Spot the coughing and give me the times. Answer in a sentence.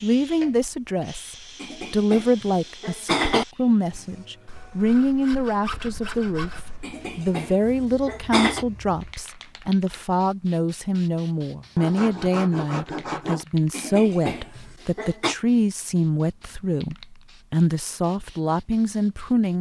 You can hear the coughing from 1.6 to 3.5 s, from 6.8 to 8.7 s and from 13.7 to 15.3 s.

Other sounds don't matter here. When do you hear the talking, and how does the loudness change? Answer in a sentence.
You can hear the talking from 0.0 to 19.5 s, at a steady volume.